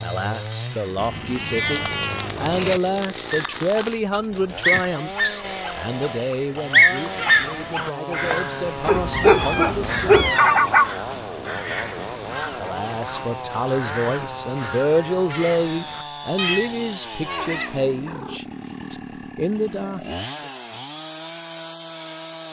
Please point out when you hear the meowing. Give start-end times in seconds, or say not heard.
0.9-2.8, 9.1-10.8, 16.4-18.4.